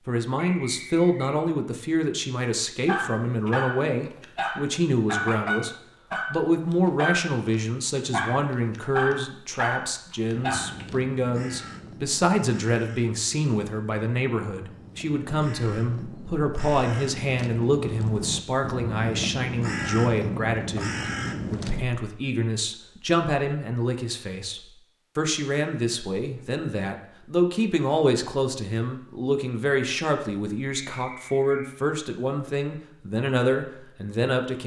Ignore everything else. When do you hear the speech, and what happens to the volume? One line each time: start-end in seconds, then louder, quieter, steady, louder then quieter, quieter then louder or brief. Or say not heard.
0.1-34.6 steady.